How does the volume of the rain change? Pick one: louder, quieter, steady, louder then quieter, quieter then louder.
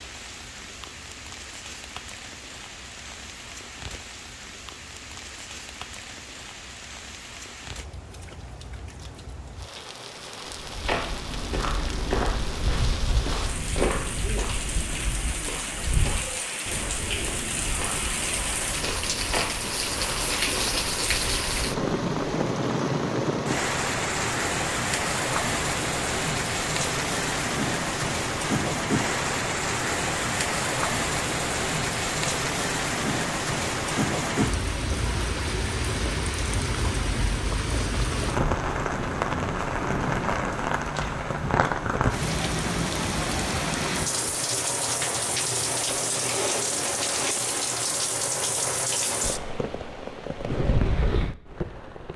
louder.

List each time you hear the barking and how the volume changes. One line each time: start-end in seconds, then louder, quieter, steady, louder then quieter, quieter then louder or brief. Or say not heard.
not heard.